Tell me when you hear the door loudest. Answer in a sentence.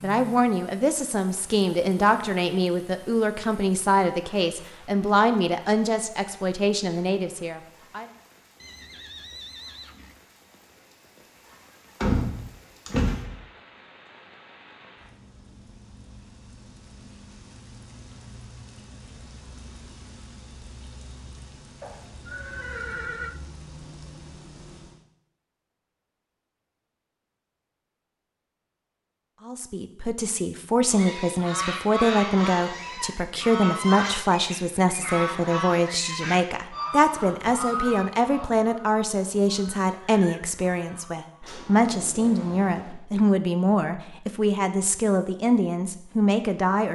The loudest moment of the door is at 12 seconds.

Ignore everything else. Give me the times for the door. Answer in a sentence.
The door can be heard from 12.0 to 13.3 s and from 41.4 to 43.0 s.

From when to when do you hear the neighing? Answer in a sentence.
The neighing can be heard from 8.6 to 10.2 s, from 21.8 to 23.4 s and from 40.0 to 40.5 s.